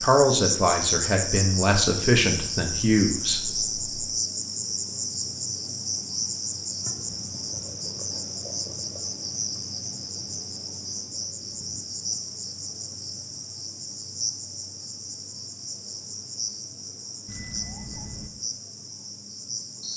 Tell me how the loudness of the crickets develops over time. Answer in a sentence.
The volume of the crickets goes down.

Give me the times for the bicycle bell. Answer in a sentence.
You can hear the bicycle bell from 17.2 to 18.3 s.